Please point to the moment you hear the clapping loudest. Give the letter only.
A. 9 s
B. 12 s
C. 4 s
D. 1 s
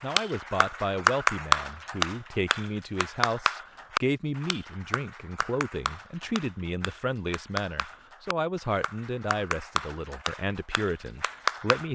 D.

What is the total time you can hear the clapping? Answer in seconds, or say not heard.
12 s.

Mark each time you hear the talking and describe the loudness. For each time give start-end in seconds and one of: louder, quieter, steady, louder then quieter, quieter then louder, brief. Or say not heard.
0.0-11.9 steady.